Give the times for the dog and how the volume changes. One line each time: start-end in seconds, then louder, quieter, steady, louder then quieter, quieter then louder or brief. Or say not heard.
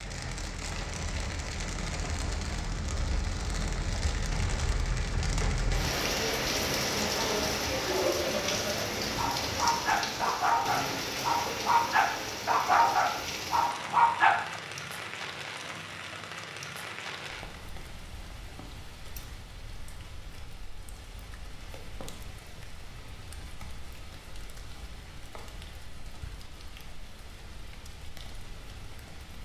9.2-14.6 steady.